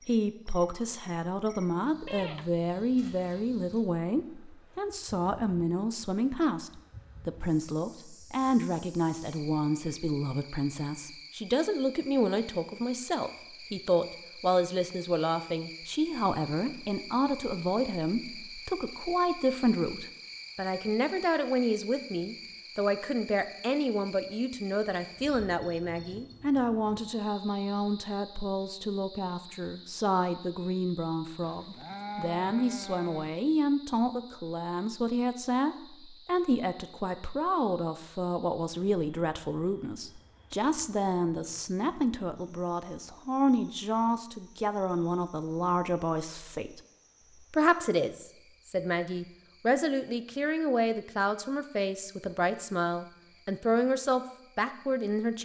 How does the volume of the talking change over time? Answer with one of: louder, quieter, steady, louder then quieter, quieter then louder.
steady.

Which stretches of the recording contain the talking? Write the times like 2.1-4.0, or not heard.
0.1-46.8, 47.5-55.3.